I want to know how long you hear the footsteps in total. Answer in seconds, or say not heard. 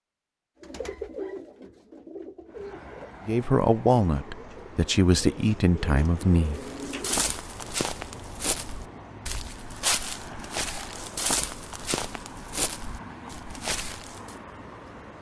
8 s.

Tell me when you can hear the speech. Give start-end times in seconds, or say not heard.
3.2-6.6.